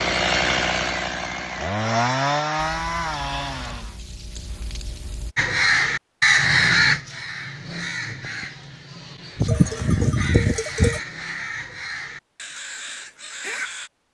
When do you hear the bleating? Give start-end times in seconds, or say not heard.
2.5-5.3, 9.4-11.0.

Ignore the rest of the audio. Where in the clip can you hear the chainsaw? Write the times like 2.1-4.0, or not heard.
0.0-4.0.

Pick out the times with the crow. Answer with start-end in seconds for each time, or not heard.
5.3-13.9.